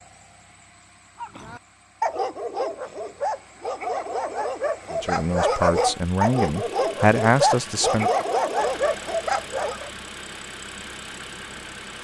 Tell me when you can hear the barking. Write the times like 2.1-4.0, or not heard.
1.2-9.9.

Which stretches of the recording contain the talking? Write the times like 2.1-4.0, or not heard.
4.9-8.1.